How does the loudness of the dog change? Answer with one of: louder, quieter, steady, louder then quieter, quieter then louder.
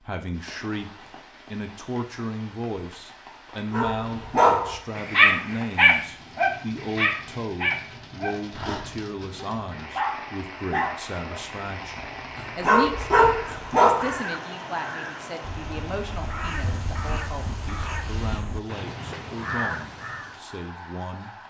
quieter then louder.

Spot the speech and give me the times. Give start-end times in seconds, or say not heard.
0.0-21.4.